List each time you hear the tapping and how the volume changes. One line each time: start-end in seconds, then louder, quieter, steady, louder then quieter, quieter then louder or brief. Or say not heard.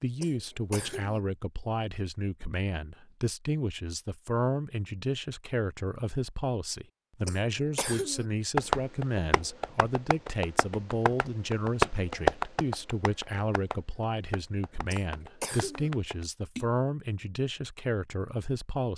8.6-16.7 louder then quieter.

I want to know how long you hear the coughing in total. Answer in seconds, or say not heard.
3 s.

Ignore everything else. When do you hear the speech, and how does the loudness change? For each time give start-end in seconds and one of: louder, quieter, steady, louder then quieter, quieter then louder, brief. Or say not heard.
0.0-18.9 steady.